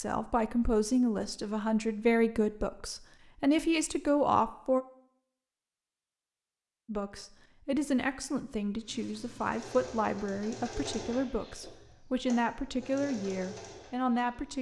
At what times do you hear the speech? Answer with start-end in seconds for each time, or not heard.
0.0-4.8, 6.8-14.5.